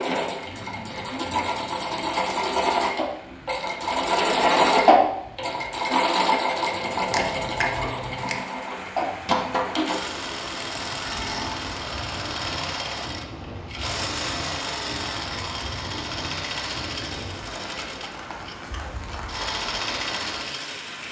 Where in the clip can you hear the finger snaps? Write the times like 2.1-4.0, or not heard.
7.1-8.4.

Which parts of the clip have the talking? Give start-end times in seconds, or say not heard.
not heard.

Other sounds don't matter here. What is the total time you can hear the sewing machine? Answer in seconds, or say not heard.
21 s.